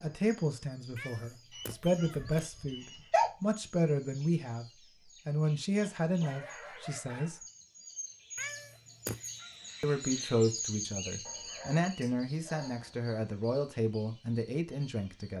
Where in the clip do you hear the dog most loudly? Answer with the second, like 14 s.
3 s.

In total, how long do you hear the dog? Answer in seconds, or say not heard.
5 s.